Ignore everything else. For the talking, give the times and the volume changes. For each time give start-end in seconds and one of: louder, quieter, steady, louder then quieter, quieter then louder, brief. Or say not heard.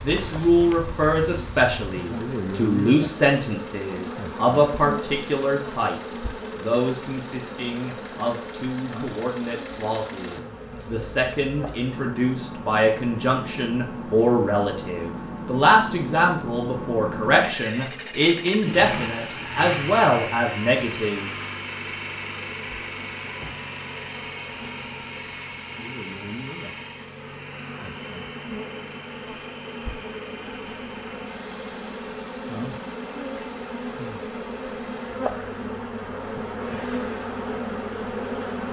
0.0-21.3 quieter then louder.